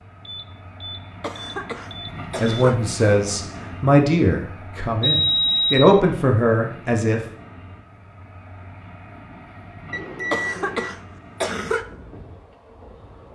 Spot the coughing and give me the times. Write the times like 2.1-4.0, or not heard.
1.2-2.8, 10.3-11.8.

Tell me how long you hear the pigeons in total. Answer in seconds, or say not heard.
not heard.